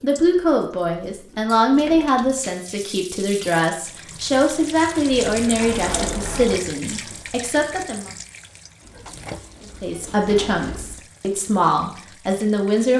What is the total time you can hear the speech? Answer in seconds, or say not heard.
11 s.